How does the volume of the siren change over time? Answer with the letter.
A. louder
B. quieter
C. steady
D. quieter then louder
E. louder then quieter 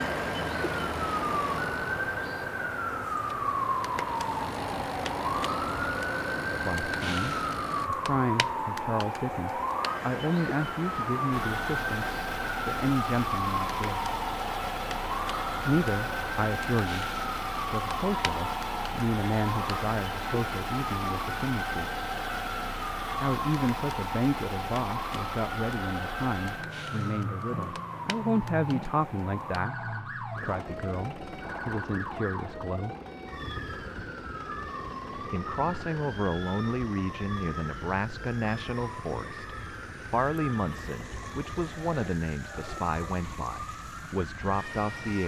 B.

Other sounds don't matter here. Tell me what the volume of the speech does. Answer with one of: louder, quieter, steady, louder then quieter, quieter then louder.
steady.